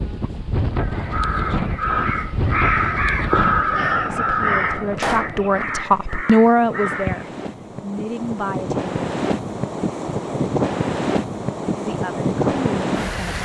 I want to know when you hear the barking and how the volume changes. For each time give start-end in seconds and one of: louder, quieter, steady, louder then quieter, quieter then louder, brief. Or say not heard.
not heard.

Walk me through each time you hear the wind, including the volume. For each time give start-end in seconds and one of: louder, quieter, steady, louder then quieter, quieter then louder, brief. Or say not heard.
0.0-13.4 quieter then louder.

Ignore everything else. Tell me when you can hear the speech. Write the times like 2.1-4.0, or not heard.
4.0-8.9, 11.8-13.4.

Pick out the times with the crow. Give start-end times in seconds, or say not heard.
0.7-7.3.